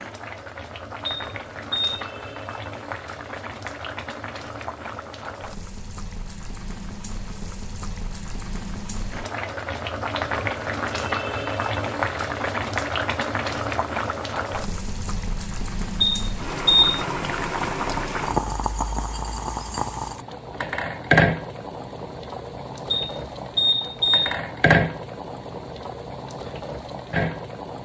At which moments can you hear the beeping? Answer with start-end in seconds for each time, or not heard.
1.1-1.9, 16.0-17.1, 22.9-24.4.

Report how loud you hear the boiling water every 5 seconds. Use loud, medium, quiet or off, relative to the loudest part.
medium, medium, loud, loud, loud, medium.